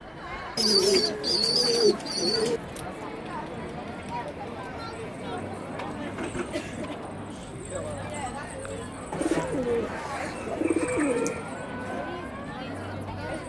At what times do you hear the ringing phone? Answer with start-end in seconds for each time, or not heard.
not heard.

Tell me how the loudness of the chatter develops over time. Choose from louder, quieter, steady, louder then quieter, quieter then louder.
steady.